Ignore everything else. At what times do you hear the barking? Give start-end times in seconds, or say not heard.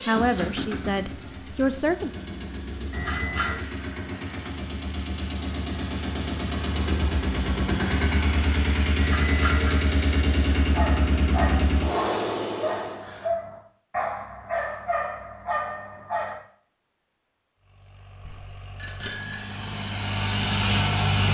10.8-16.4.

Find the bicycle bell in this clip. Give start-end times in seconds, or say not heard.
2.9-3.6, 8.9-9.8, 18.2-19.6.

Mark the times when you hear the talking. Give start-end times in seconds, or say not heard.
0.0-2.1.